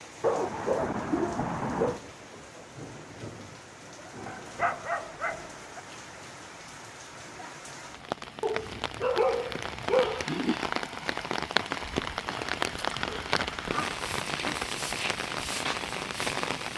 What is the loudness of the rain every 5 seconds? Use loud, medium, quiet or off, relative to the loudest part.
quiet, medium, loud, loud.